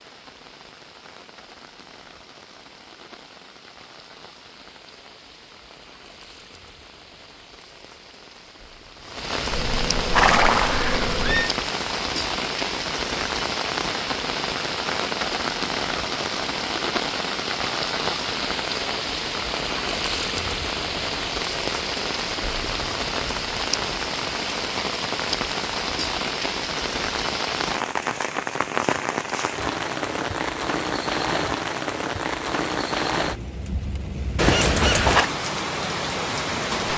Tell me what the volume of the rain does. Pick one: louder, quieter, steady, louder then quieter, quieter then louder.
louder.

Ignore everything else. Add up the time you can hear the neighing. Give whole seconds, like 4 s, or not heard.
3 s.